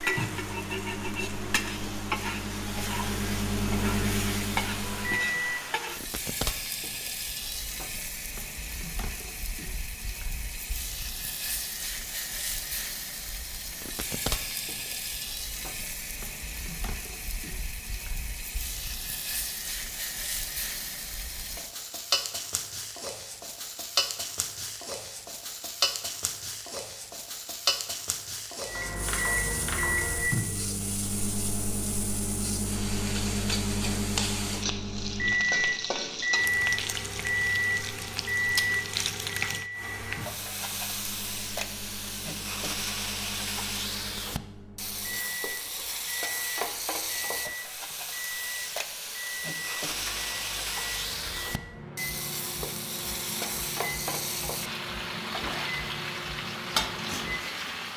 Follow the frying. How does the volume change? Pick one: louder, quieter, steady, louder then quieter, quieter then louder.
steady.